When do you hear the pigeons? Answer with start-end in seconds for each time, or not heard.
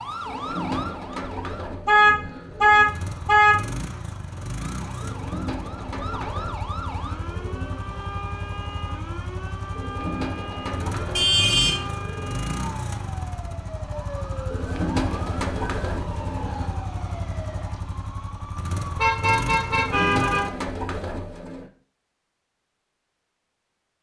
0.2-3.0, 5.0-7.8, 9.8-12.4, 14.5-16.8, 19.7-21.7.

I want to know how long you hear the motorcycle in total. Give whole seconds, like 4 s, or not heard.
18 s.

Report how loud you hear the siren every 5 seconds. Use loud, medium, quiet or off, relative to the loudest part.
loud, loud, loud, medium, off.